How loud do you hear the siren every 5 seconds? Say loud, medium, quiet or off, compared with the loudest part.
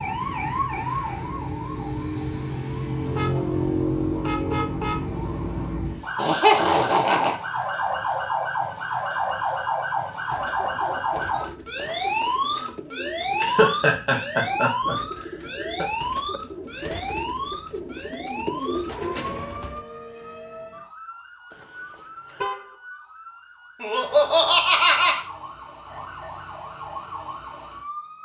loud, loud, loud, medium, quiet, medium.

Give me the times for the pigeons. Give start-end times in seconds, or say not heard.
10.2-19.8.